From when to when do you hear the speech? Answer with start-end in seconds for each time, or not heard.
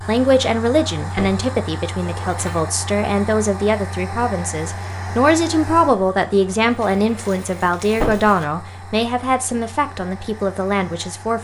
0.1-11.3.